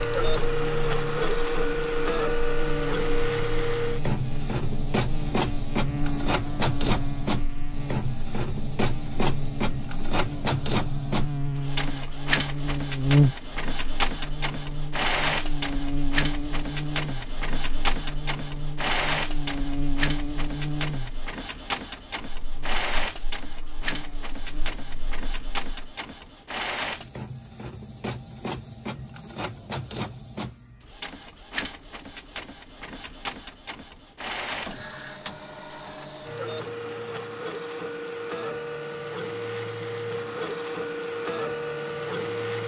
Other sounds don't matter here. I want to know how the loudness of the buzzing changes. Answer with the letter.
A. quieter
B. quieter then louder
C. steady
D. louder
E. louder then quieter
E.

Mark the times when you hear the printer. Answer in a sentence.
You can hear the printer from 0.0 to 42.6 s.